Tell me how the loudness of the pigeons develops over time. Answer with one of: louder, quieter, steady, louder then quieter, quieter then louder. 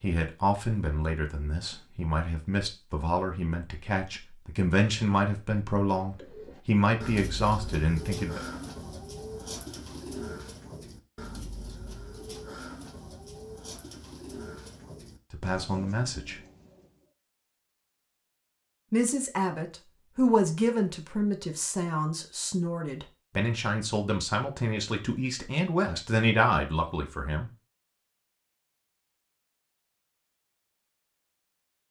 quieter.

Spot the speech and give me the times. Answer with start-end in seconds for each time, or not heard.
0.0-8.4, 15.3-16.4, 18.9-27.5.